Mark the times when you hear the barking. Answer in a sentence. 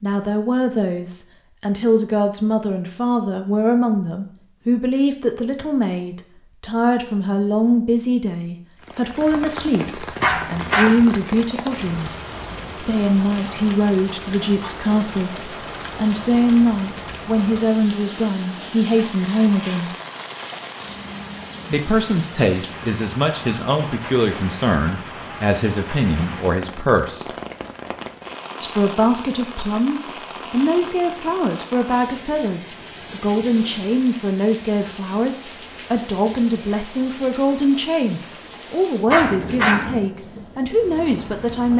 You can hear the barking from 10.2 to 11.1 s and from 39.0 to 40.0 s.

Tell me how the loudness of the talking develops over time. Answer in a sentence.
The volume of the talking stays about the same.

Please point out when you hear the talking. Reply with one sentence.
The talking can be heard from 0.0 to 12.1 s, from 12.8 to 19.9 s, from 21.7 to 27.2 s and from 28.6 to 41.7 s.